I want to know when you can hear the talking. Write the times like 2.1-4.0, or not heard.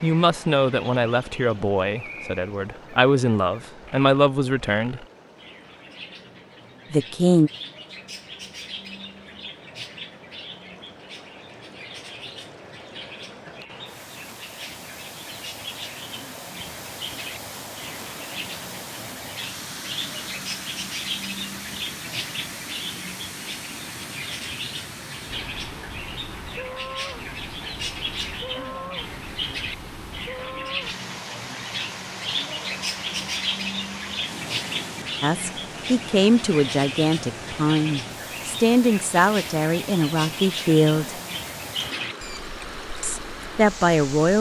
0.0-5.0, 6.9-7.5, 35.2-41.1, 43.0-44.3.